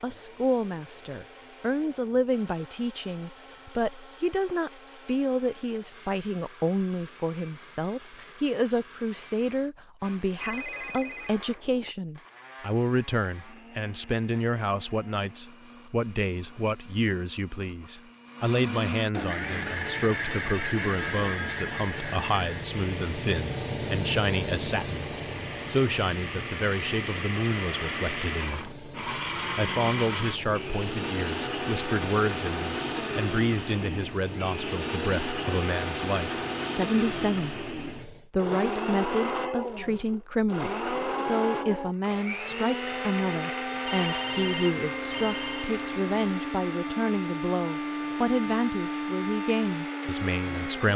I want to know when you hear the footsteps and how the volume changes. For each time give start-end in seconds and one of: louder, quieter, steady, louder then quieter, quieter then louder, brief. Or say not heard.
not heard.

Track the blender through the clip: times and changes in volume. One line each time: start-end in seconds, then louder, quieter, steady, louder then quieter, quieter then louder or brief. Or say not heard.
0.0-50.9 louder.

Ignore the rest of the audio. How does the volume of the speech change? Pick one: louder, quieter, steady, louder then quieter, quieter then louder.
steady.